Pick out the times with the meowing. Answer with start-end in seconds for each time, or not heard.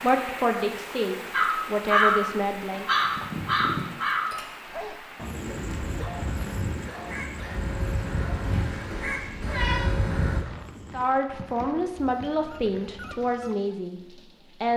2.7-3.9, 8.4-9.9.